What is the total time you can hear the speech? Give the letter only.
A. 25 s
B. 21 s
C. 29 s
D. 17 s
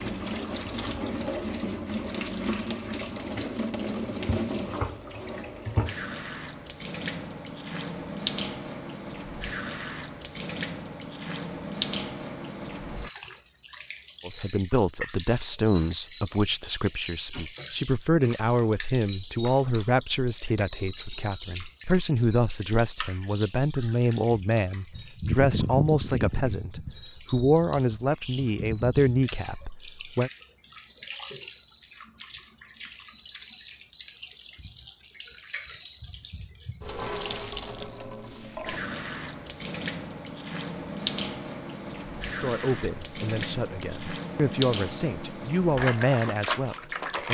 B.